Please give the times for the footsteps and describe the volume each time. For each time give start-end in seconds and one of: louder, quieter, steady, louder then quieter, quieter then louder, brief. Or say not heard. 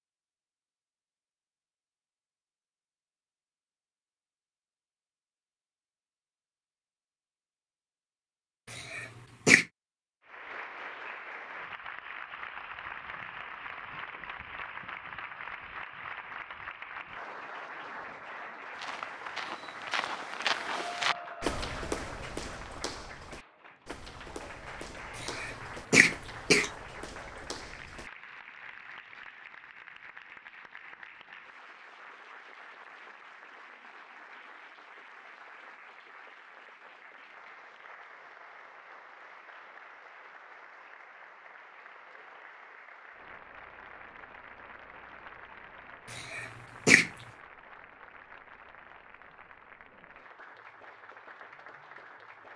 18.7-28.1 quieter.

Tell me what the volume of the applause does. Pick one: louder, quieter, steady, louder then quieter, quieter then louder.
quieter.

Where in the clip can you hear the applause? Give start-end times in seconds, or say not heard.
10.2-52.5.